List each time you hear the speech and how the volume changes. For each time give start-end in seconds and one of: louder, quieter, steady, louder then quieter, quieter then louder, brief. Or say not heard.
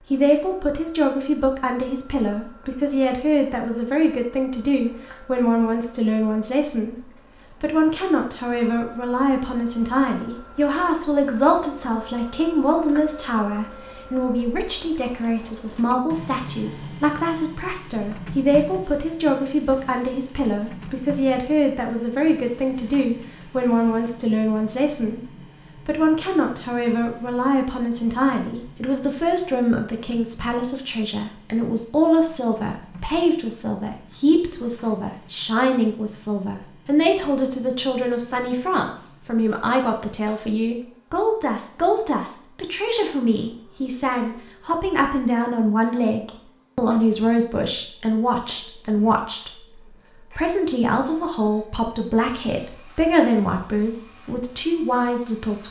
0.1-55.6 steady.